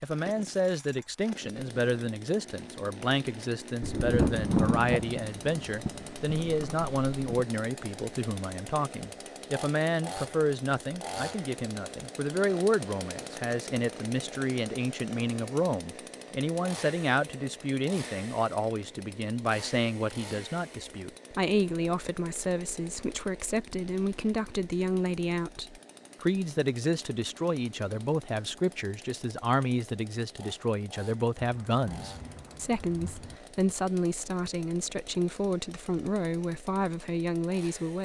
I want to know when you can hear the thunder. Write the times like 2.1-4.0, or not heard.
3.8-7.5, 31.4-33.4.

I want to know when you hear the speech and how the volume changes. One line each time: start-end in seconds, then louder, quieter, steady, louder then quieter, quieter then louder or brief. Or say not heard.
0.0-38.0 steady.